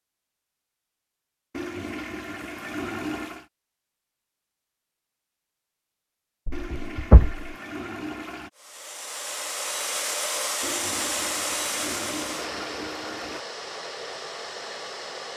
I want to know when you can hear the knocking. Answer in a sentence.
You can hear the knocking from 6.5 to 7.5 s.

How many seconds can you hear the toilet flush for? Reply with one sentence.
The toilet flush can be heard for 7 seconds in total.